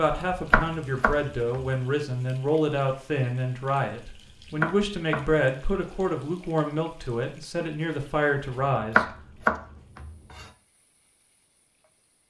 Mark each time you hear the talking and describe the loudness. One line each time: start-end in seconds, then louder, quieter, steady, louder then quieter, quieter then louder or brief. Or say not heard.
0.0-9.1 steady.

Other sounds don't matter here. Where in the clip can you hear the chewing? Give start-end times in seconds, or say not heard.
not heard.